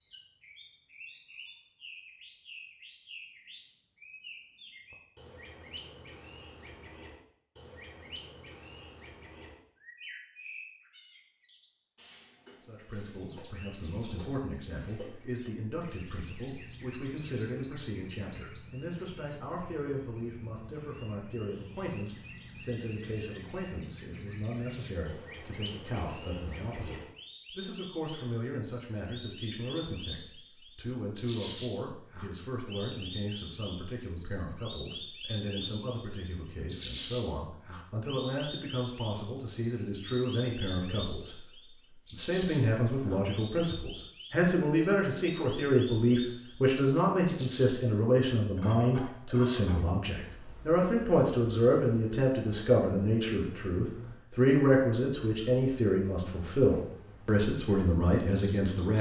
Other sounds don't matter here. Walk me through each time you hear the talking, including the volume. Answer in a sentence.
You can hear the talking from 12.7 to 58.9 s, getting louder.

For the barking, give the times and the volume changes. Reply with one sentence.
The barking can't be heard in this clip.